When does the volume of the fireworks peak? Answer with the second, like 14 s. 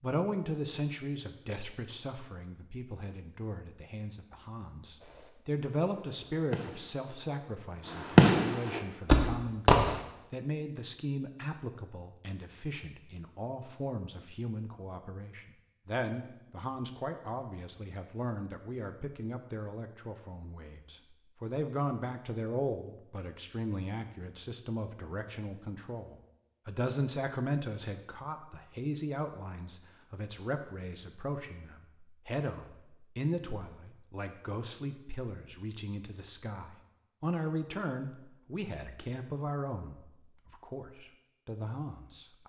8 s.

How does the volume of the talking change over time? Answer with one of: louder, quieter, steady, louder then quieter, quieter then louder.
steady.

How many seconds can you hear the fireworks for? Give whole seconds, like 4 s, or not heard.
5 s.